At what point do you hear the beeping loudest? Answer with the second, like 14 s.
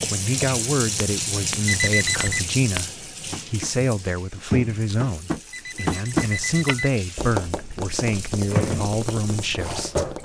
2 s.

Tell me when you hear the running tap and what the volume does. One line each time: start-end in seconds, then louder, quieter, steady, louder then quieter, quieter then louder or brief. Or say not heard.
0.0-10.2 quieter then louder.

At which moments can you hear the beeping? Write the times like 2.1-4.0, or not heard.
1.6-2.5, 5.5-7.0.